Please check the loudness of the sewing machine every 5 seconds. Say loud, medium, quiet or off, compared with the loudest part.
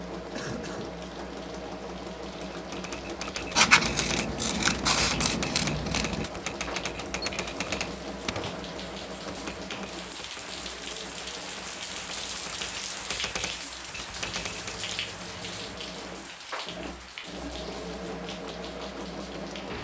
loud, loud, medium, loud.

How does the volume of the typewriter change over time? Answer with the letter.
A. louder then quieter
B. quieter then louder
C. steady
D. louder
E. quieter
B.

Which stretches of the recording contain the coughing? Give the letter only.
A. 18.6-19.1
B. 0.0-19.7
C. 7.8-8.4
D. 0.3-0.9
D.